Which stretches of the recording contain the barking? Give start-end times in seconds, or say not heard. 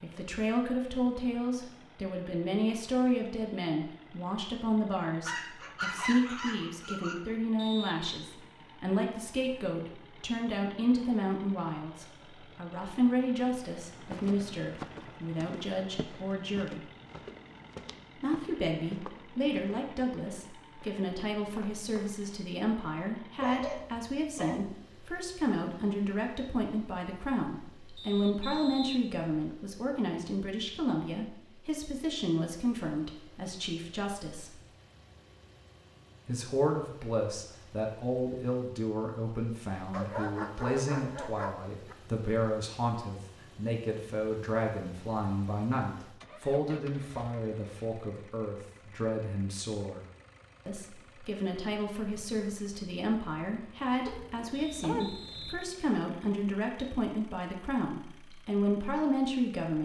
5.2-7.2, 23.4-24.8, 39.9-42.0, 54.0-55.6.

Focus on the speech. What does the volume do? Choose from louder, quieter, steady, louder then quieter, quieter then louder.
steady.